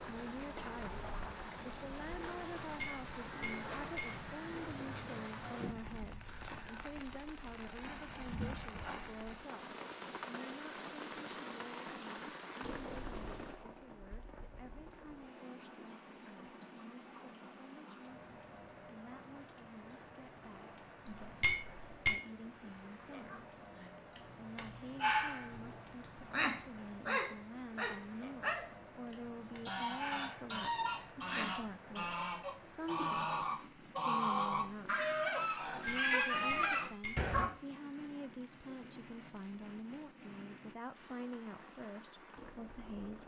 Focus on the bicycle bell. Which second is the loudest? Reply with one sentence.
The volume of the bicycle bell peaks at 22 seconds.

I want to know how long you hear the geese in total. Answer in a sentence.
The geese can be heard for 8 seconds in total.